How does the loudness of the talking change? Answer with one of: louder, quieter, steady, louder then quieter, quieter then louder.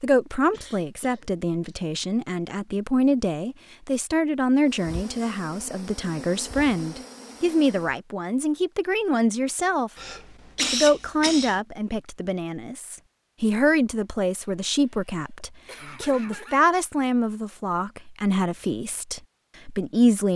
steady.